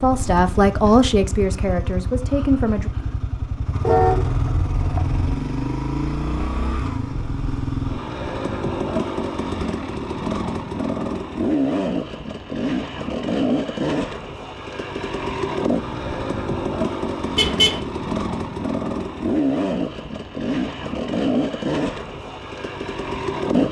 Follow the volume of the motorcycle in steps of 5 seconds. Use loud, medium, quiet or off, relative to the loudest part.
medium, loud, loud, loud, loud.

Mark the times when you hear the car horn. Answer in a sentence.
You can hear the car horn from 3.9 to 5.3 s and from 17.4 to 17.8 s.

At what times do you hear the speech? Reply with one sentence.
The speech can be heard from 0.0 to 2.9 s.